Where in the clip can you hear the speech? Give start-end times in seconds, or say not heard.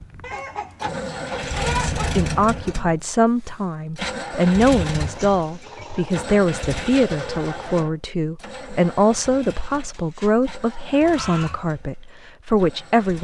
1.9-13.1.